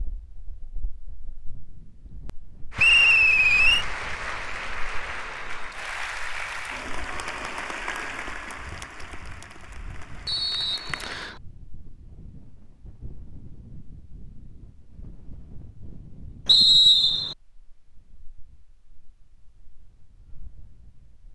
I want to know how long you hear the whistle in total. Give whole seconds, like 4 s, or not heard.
3 s.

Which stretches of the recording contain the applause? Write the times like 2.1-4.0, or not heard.
2.7-11.3.